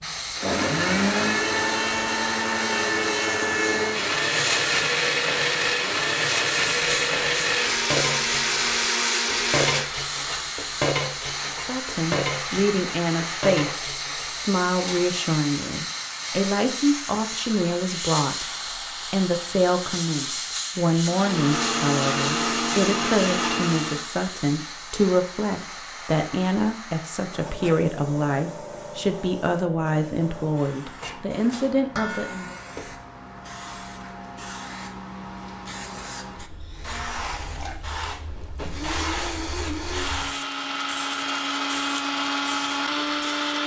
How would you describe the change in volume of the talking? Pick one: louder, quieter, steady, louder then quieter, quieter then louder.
steady.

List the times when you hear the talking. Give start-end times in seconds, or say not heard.
11.5-18.4, 19.1-32.5.